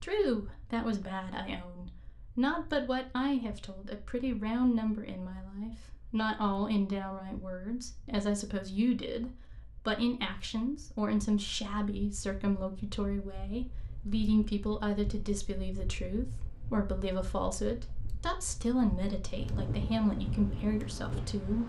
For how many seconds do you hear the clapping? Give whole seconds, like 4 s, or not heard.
not heard.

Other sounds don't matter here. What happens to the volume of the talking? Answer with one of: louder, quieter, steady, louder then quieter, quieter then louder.
steady.